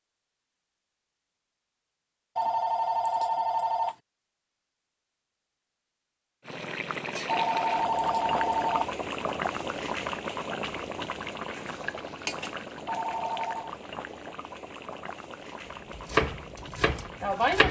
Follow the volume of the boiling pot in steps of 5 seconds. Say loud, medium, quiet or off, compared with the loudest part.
off, loud, loud, medium.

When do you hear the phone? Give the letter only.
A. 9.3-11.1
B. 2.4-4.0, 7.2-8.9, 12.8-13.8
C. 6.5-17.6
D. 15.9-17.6
B.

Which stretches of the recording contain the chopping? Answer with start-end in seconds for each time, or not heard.
15.9-17.6.